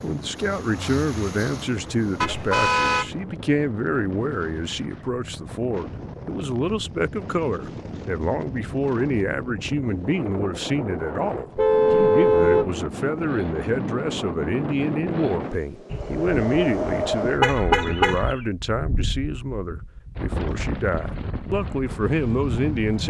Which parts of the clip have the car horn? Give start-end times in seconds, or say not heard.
2.2-3.1, 11.6-12.7, 15.9-18.4.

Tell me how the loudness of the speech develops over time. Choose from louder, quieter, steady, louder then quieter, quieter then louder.
steady.